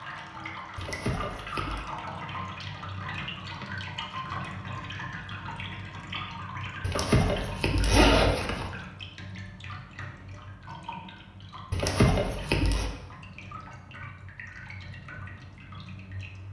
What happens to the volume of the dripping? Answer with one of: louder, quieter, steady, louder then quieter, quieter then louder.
quieter.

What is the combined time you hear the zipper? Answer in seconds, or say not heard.
4 s.